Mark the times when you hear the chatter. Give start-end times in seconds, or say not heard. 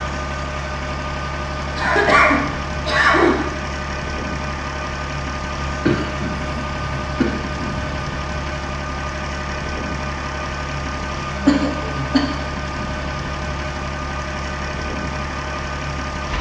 not heard.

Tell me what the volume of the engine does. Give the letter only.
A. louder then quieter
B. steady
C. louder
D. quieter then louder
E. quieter
B.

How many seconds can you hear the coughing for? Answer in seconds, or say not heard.
5 s.